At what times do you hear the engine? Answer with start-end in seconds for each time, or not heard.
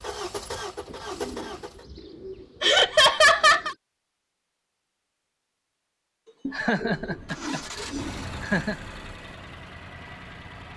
0.0-1.9, 7.0-10.7.